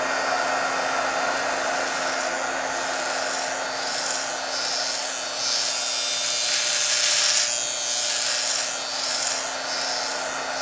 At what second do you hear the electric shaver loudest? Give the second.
7 s.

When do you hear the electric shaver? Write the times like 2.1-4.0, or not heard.
0.0-10.5.